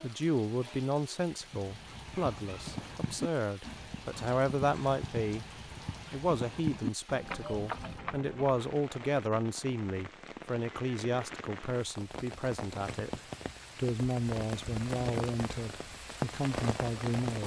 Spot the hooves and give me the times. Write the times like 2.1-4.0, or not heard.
1.4-8.7.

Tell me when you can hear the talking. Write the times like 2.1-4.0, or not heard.
0.0-5.5, 6.1-17.4.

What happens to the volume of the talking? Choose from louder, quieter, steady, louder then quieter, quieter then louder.
steady.